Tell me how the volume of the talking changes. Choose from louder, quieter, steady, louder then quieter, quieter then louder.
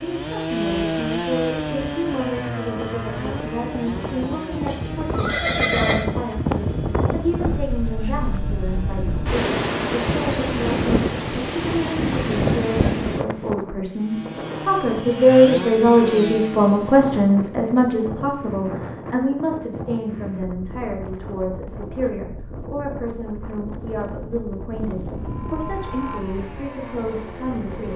louder then quieter.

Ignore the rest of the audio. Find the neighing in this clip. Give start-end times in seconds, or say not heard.
4.7-6.1.